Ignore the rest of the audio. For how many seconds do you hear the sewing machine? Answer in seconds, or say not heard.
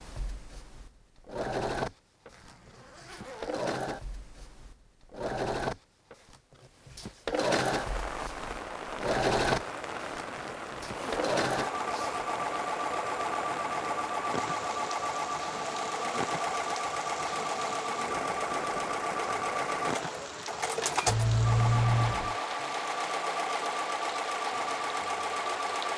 26 s.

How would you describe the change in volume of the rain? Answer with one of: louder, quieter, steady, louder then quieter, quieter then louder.
steady.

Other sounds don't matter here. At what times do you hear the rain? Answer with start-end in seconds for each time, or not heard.
7.7-25.9.